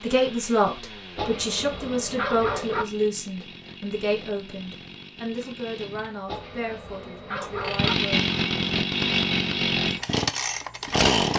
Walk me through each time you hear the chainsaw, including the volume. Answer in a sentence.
The chainsaw can be heard from 0.0 to 11.3 s, getting louder.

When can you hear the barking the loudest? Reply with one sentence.
The volume of the barking peaks at 2 seconds.